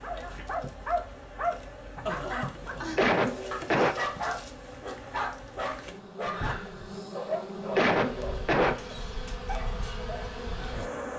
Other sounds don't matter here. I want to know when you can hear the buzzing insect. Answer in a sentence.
The buzzing insect can be heard from 0.0 to 11.1 s.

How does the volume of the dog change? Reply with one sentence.
The loudness of the dog goes down.